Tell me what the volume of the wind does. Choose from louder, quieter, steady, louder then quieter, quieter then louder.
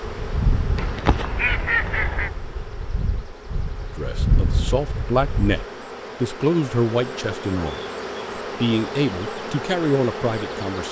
quieter then louder.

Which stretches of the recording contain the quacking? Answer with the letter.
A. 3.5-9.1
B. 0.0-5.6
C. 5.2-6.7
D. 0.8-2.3
D.